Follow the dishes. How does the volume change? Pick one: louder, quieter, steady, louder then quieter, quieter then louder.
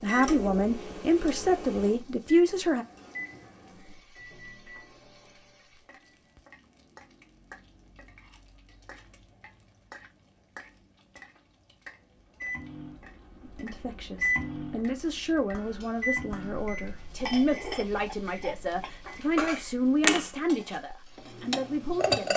louder then quieter.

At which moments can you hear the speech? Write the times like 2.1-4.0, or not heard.
0.0-2.9, 13.4-22.3.